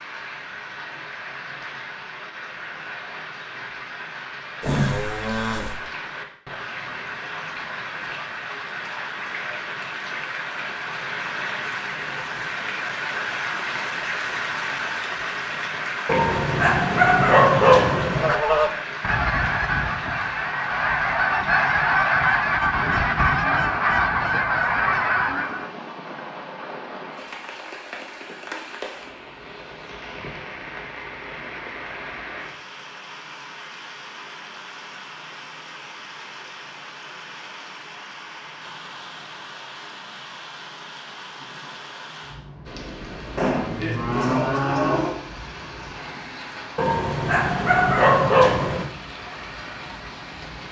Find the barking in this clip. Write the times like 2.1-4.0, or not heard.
16.1-18.4, 46.8-48.9.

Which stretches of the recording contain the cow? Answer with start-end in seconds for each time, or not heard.
4.6-5.8, 43.4-45.1.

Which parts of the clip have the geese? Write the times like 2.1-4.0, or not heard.
18.1-25.7.